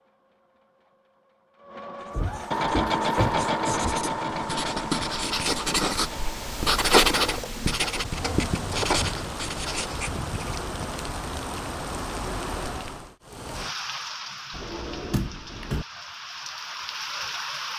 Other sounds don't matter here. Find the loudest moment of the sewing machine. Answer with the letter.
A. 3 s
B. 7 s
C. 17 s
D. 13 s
A.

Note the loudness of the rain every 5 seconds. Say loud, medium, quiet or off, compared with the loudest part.
off, loud, loud, loud.